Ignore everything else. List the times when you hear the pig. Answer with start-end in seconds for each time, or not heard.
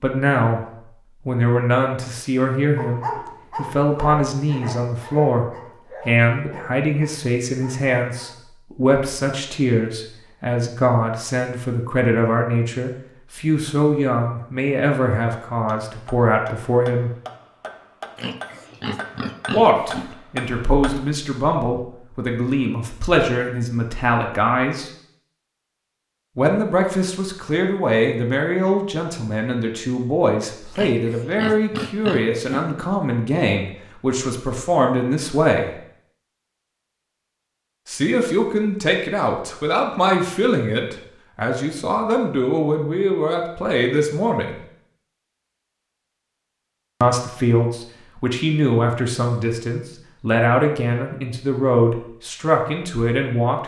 18.1-20.1, 30.8-32.8.